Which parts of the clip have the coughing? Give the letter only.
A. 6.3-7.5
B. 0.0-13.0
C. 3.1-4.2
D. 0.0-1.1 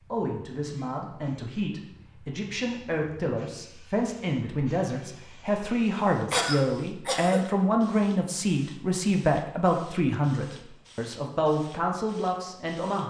A.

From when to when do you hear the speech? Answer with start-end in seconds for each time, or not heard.
0.0-13.0.